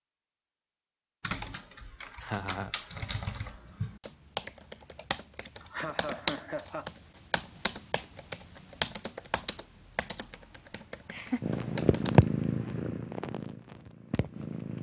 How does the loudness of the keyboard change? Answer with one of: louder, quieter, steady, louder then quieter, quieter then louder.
louder then quieter.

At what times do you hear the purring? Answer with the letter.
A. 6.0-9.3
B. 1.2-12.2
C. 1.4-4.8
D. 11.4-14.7
D.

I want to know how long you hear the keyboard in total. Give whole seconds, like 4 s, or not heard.
11 s.